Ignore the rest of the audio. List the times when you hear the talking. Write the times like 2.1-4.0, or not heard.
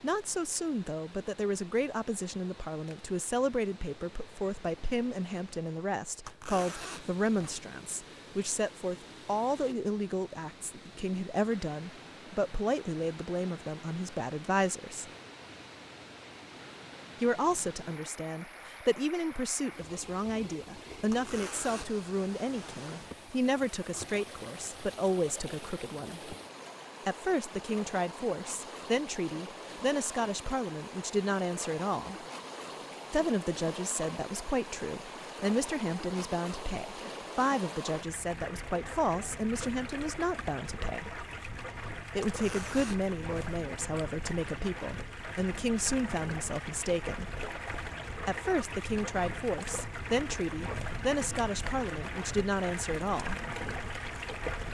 0.0-15.1, 17.2-26.4, 27.1-32.1, 33.1-41.2, 42.1-47.4, 48.2-53.4.